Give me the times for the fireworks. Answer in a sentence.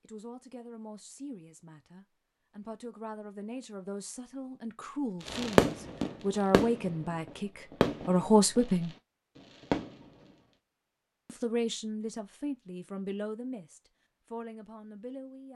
The fireworks can be heard from 5.2 to 10.3 s.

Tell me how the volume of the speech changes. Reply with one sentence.
The volume of the speech goes up, then down.